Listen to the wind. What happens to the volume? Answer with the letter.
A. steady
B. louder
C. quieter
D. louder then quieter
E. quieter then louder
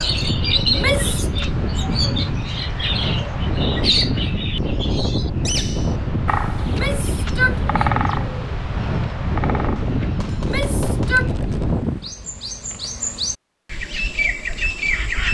A.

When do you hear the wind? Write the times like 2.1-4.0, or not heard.
0.0-12.2.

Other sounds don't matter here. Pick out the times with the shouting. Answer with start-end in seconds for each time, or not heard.
0.7-1.3, 6.7-7.9, 10.3-11.3.